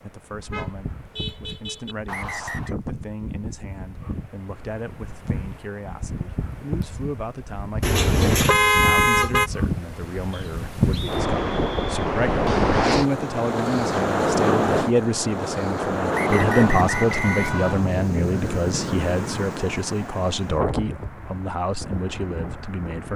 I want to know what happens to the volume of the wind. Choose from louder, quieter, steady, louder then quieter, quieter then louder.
louder then quieter.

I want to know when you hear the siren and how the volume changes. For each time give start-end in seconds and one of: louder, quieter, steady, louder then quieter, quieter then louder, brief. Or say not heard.
not heard.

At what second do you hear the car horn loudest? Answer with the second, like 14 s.
9 s.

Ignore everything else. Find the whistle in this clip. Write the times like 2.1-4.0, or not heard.
2.0-2.8, 10.3-11.9, 16.1-17.9.